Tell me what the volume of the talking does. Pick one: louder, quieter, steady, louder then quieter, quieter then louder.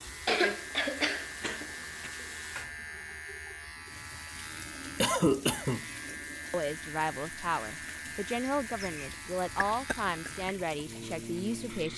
steady.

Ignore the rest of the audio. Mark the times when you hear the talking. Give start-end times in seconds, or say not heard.
6.1-11.9.